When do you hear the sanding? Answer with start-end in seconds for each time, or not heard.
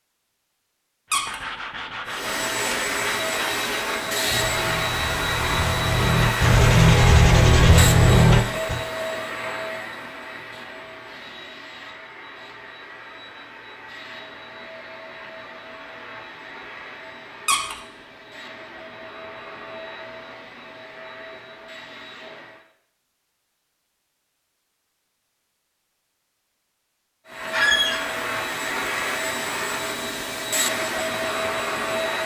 1.1-8.8.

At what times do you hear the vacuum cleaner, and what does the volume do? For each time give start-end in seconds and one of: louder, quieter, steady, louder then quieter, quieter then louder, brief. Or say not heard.
2.0-22.6 quieter
27.2-32.2 steady.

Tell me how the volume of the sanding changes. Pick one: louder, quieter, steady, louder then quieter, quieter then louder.
louder.